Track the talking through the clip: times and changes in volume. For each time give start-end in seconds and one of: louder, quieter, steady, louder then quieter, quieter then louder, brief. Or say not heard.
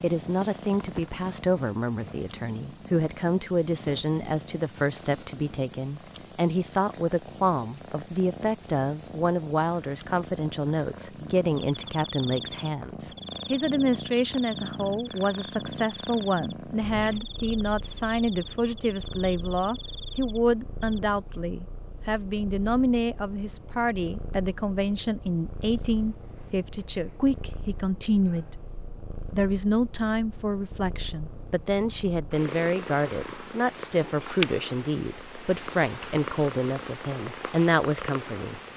0.0-38.6 steady.